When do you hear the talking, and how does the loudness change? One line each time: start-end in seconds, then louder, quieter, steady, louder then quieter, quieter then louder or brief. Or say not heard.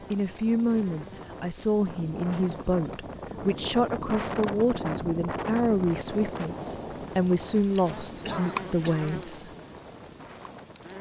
0.1-9.5 steady.